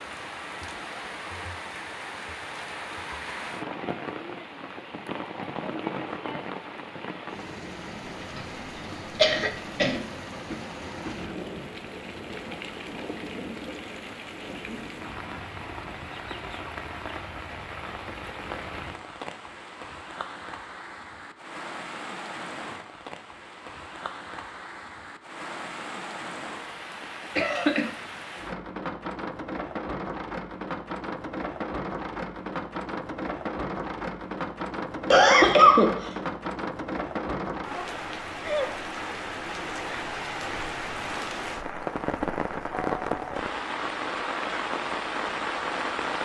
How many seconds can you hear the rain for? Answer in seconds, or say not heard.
46 s.